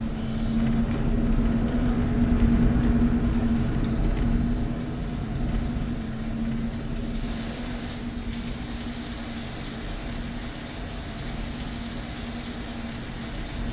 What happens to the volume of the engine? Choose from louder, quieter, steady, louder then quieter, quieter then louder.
quieter.